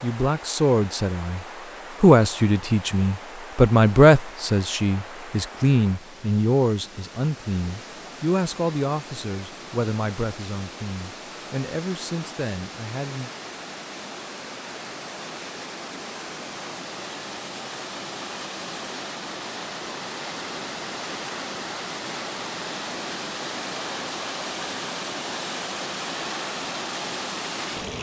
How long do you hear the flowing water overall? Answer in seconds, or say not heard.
28 s.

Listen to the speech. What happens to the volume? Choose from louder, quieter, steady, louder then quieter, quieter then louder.
quieter.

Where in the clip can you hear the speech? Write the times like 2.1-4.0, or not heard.
0.0-13.3.